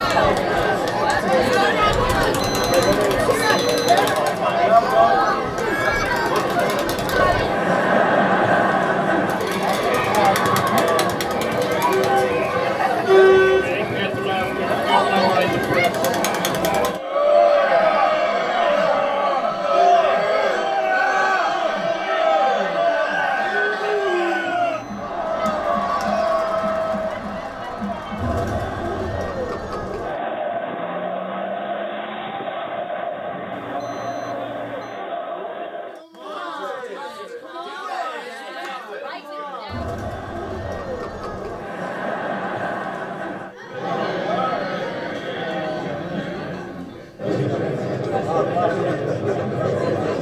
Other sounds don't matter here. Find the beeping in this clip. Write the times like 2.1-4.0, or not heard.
2.1-4.2, 24.4-25.1, 33.5-35.0.